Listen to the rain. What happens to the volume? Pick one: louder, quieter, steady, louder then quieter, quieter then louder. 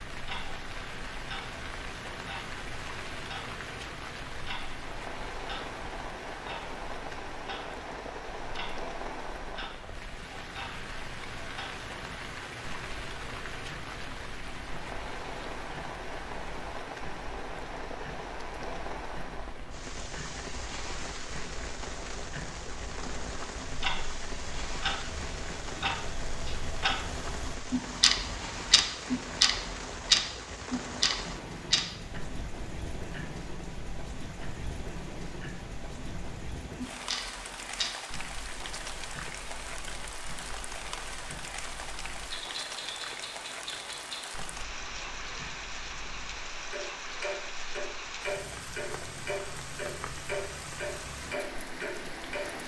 steady.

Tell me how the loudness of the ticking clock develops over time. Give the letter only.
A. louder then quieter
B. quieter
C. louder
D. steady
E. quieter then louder
A.